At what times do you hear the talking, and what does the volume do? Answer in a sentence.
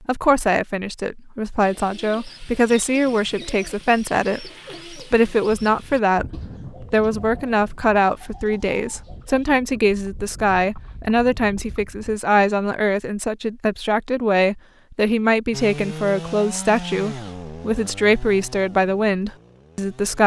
You can hear the talking from 0.1 to 20.2 s, at a steady volume.